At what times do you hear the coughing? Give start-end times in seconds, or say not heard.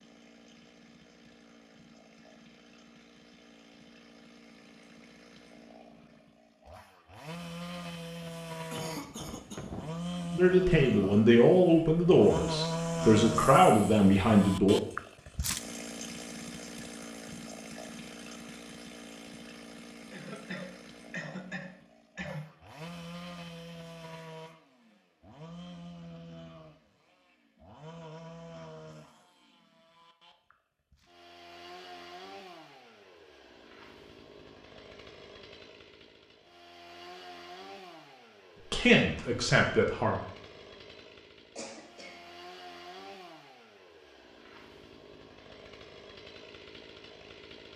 8.7-9.9, 20.1-22.5, 41.5-42.2.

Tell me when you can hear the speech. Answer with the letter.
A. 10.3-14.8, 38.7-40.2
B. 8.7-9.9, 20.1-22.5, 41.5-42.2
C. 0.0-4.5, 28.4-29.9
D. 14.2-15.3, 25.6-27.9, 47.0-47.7
A.